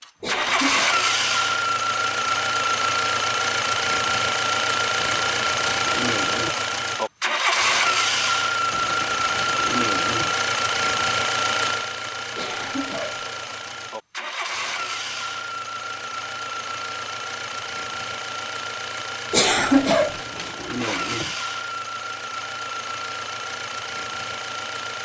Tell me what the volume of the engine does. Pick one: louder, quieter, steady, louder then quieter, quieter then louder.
quieter.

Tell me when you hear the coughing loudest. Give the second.
20 s.